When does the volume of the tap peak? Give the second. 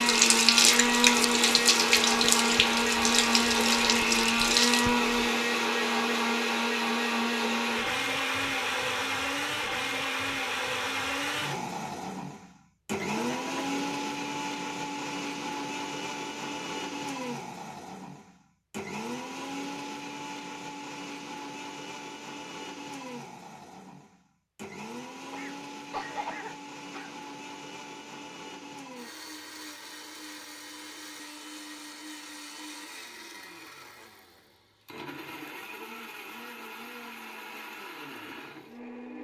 1 s.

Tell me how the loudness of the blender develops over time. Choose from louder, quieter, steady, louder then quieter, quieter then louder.
quieter.